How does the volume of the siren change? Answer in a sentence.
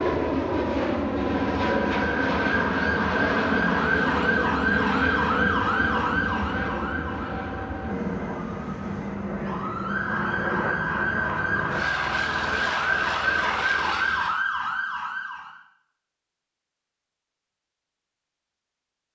The loudness of the siren goes down, then up.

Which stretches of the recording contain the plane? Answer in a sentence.
The plane can be heard from 0.0 to 14.4 s.